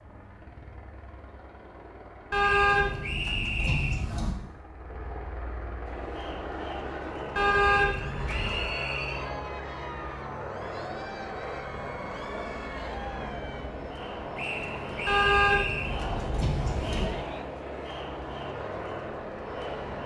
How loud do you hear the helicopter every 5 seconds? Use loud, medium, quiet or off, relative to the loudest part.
medium, loud, loud, loud.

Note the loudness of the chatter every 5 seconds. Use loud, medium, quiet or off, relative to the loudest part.
off, loud, loud, loud.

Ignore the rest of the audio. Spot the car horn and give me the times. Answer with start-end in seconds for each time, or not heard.
2.3-4.3, 7.3-8.7, 15.1-17.1.